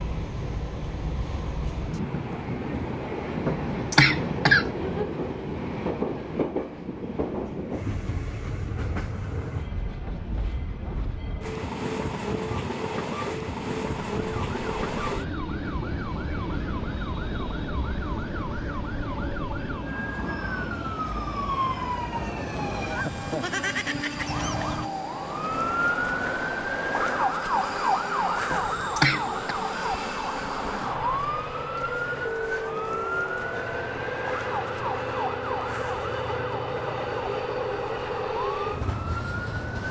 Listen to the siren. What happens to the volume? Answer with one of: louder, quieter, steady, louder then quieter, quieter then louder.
louder then quieter.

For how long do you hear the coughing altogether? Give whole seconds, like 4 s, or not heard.
2 s.